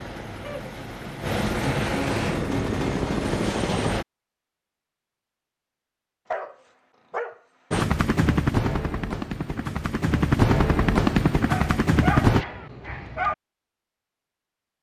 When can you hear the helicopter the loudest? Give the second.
11 s.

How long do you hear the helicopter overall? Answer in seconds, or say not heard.
9 s.